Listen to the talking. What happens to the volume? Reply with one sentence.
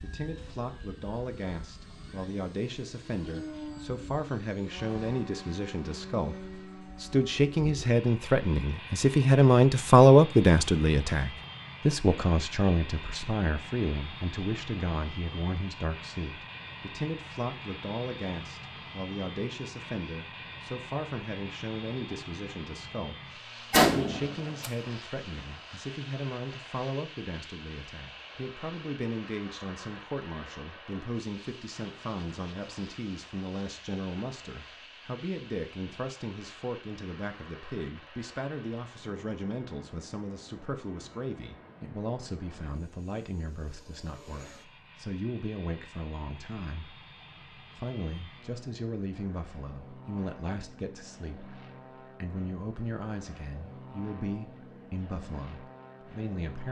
The volume of the talking goes down.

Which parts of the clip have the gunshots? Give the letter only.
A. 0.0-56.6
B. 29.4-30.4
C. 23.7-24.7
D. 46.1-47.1
C.